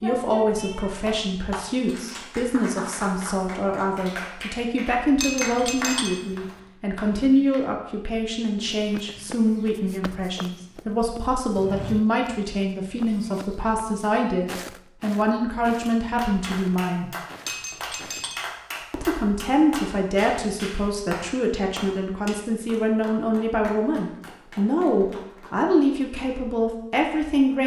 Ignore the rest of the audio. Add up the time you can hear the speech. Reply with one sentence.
The speech can be heard for 26 seconds in total.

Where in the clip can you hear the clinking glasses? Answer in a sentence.
You can hear the clinking glasses from 5.2 to 6.5 s and from 17.4 to 18.5 s.